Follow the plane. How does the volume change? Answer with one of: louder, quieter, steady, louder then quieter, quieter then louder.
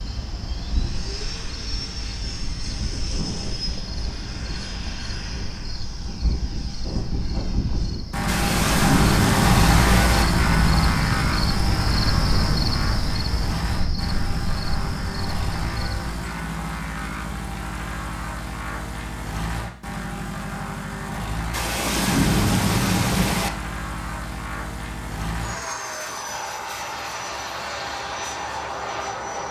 louder then quieter.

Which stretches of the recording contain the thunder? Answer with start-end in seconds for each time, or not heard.
8.2-10.2, 21.5-23.5.